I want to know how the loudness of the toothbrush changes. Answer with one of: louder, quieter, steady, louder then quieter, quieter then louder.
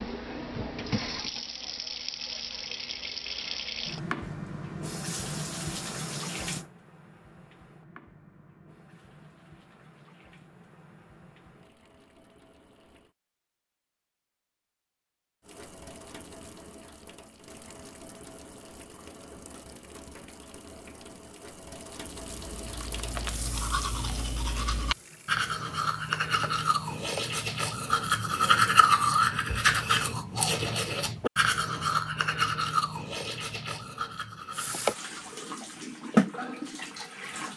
louder then quieter.